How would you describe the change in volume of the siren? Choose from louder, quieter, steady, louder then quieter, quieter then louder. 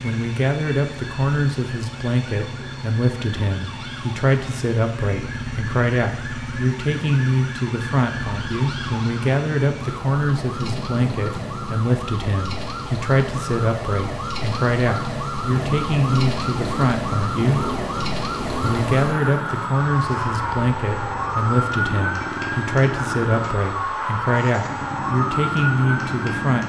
louder.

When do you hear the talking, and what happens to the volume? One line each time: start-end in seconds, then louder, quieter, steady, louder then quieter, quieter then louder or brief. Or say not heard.
0.0-17.6 steady
18.6-26.6 steady.